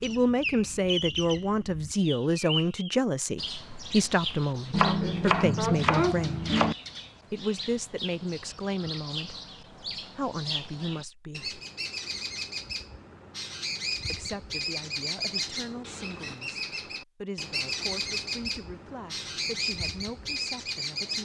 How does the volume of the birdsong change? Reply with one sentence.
The volume of the birdsong goes down, then up.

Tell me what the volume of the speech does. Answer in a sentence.
The loudness of the speech goes down.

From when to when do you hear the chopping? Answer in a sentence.
The chopping can be heard from 4.7 to 6.8 s.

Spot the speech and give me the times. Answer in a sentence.
The speech can be heard from 0.0 to 6.5 s, from 7.3 to 11.6 s and from 14.1 to 21.2 s.